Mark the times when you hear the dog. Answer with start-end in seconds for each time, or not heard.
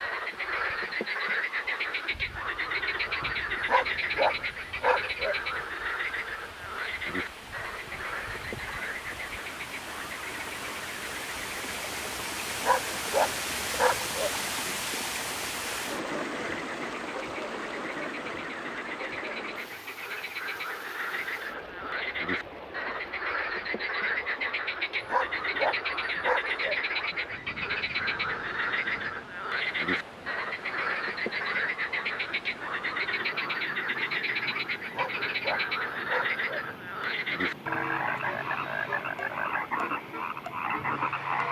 3.6-5.3, 12.6-14.3, 25.0-26.8, 34.9-36.6.